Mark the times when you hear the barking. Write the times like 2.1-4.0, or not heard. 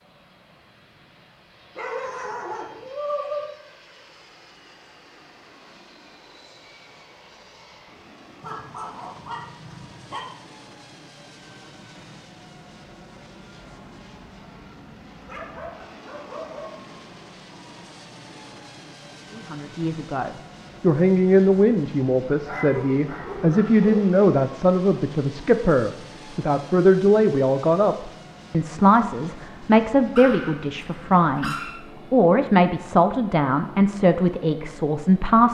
1.8-3.5, 8.4-10.2, 15.2-16.9, 22.4-24.1, 30.1-31.8.